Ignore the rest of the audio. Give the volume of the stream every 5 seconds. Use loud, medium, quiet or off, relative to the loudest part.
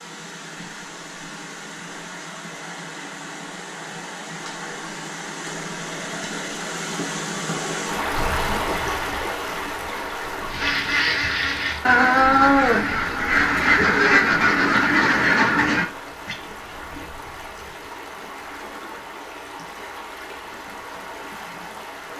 medium, loud, medium, medium, medium.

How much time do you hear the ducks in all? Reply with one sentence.
You can hear the ducks for 6 seconds altogether.